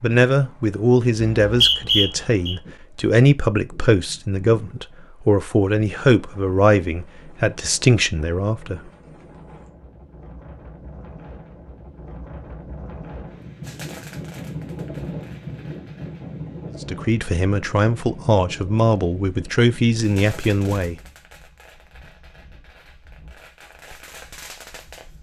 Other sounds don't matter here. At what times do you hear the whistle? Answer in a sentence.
The whistle can be heard from 1.2 to 2.5 s.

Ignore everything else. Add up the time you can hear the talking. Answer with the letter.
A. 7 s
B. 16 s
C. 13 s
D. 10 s
C.